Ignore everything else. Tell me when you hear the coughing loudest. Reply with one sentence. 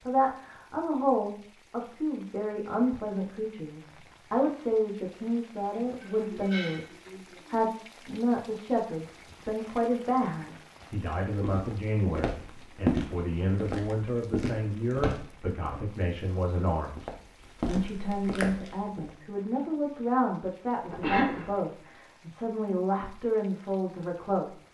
The volume of the coughing peaks at 21 seconds.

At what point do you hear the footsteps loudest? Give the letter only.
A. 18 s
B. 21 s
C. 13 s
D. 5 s
C.